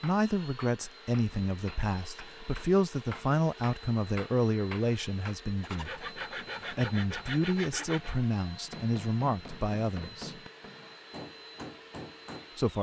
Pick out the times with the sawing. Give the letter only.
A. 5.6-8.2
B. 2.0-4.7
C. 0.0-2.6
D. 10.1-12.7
A.